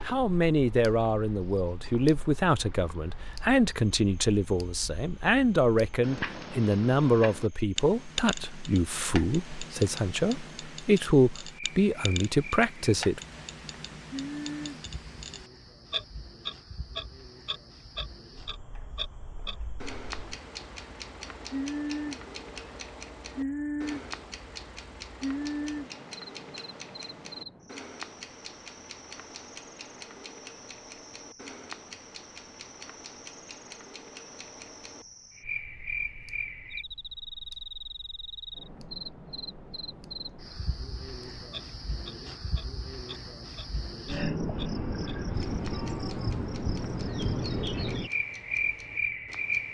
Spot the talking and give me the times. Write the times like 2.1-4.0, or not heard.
0.0-13.2.